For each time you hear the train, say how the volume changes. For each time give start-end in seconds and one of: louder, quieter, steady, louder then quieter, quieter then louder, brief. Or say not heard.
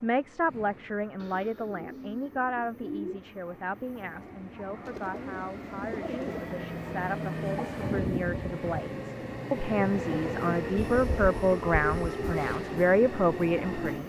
0.0-14.0 louder.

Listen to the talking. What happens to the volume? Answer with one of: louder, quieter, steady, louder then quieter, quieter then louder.
quieter then louder.